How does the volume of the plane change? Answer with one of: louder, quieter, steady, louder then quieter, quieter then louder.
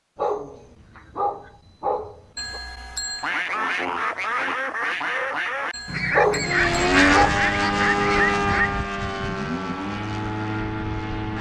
quieter.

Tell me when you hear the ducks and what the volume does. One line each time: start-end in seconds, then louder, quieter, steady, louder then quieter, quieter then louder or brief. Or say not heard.
3.2-8.8 steady.